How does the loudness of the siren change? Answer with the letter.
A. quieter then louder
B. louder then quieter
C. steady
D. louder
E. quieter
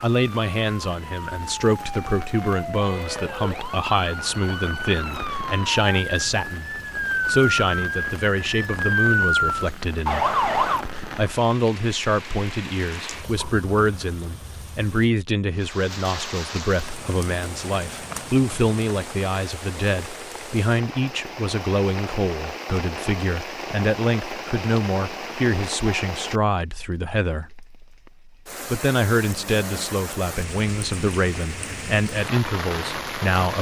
D.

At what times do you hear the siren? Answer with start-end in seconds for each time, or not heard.
0.1-10.8.